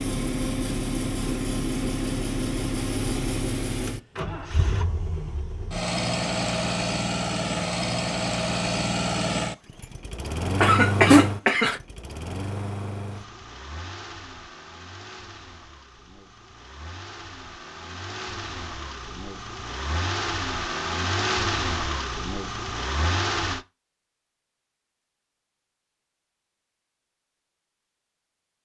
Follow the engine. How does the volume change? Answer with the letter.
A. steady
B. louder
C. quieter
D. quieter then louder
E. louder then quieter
D.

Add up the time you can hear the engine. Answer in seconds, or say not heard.
24 s.